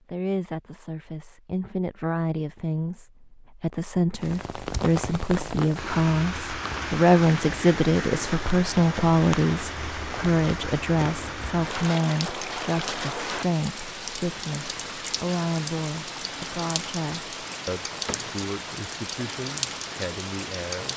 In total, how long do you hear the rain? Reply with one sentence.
The rain can be heard for 17 seconds in total.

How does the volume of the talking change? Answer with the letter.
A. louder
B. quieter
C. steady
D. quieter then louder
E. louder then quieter
E.